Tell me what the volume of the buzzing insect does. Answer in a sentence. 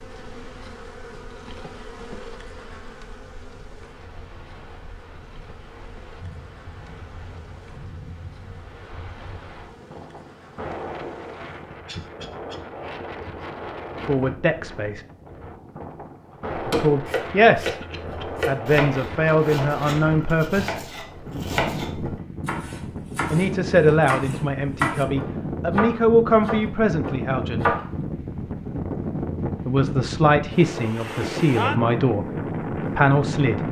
The volume of the buzzing insect goes down.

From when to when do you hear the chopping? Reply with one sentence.
You can hear the chopping from 16.5 to 27.9 s.